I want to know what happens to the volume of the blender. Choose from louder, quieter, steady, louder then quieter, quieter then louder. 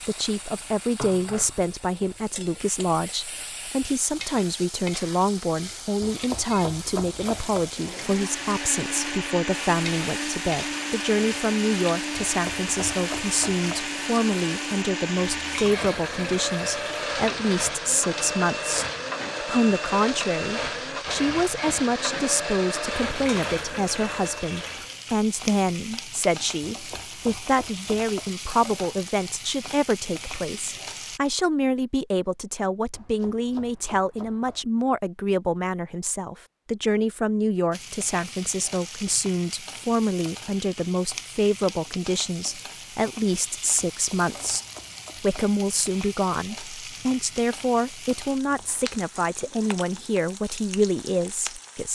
steady.